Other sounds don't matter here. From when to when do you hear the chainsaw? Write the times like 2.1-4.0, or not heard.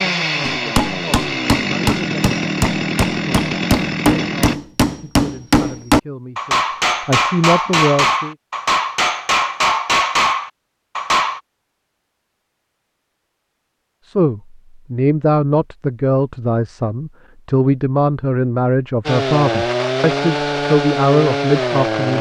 0.0-4.5, 19.1-22.1.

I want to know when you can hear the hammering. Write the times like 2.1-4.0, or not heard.
0.4-11.4.